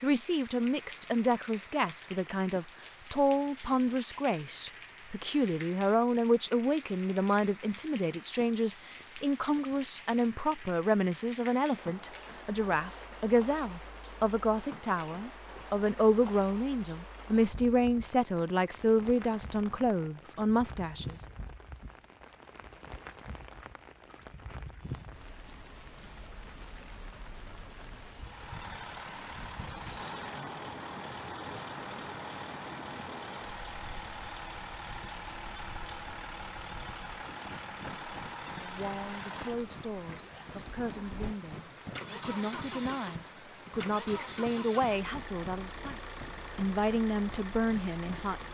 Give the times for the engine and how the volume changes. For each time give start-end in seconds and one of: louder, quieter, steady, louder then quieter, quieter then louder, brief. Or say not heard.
28.1-48.4 steady.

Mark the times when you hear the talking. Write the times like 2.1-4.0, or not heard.
0.0-21.2, 38.6-48.4.